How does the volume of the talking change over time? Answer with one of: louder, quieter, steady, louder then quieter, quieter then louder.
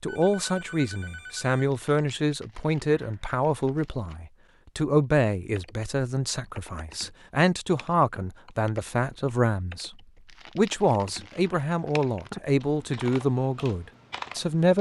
steady.